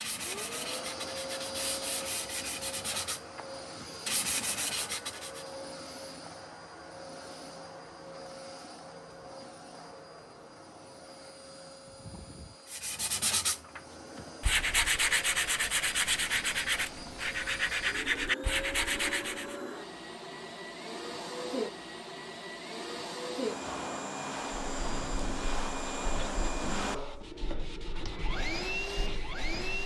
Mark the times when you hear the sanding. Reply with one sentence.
The sanding can be heard from 0.0 to 5.5 s, from 12.7 to 19.6 s and from 24.8 to 29.8 s.